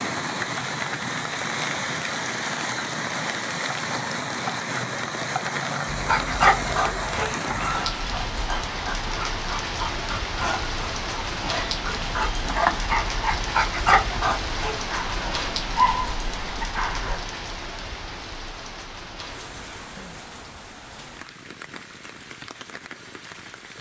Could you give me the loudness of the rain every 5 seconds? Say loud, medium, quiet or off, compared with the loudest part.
loud, loud, loud, medium, quiet.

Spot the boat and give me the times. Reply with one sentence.
You can't hear the boat here.